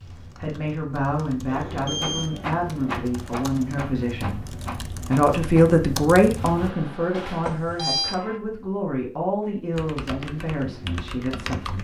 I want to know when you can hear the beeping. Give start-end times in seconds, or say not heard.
1.4-2.3, 7.5-8.2.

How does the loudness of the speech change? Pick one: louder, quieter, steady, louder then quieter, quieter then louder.
louder then quieter.